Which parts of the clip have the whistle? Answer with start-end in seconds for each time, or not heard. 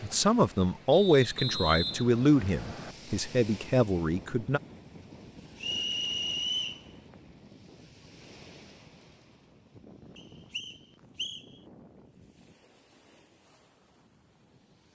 0.9-3.0, 5.5-7.3, 10.2-11.6.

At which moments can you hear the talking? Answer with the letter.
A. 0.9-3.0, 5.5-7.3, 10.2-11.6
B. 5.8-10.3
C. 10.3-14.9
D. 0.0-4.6
D.